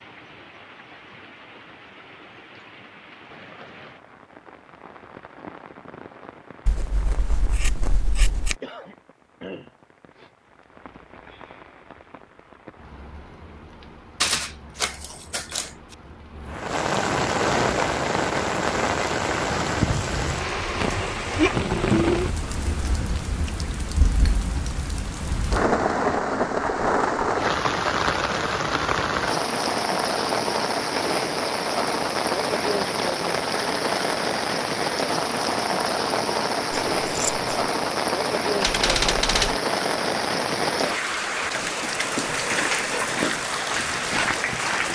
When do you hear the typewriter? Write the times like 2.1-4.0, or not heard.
14.2-15.7, 38.6-39.6.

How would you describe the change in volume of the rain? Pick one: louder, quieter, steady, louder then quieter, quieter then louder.
louder.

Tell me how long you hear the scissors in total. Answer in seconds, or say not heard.
3 s.